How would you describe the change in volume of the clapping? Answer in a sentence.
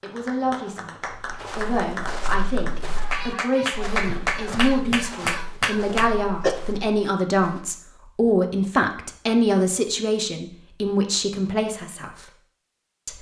The loudness of the clapping goes up.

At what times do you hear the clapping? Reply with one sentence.
The clapping can be heard from 0.0 to 6.2 s.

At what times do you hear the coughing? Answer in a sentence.
You can hear the coughing from 5.8 to 6.5 s.